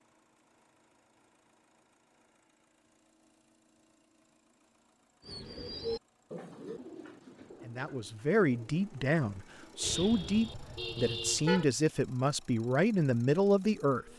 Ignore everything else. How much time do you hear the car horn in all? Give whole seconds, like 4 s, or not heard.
2 s.